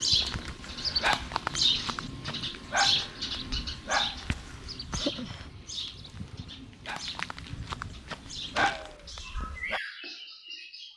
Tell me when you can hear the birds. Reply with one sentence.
You can hear the birds from 0.0 to 10.9 s.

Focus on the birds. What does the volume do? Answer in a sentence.
The volume of the birds goes down.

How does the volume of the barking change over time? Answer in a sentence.
The loudness of the barking goes down, then up.